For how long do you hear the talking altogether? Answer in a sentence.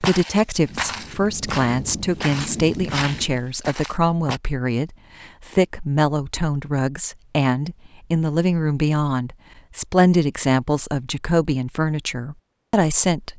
The talking can be heard for 13 seconds in total.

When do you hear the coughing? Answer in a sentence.
The coughing can't be heard in this clip.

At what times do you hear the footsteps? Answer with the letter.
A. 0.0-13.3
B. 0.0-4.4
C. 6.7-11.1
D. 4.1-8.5
B.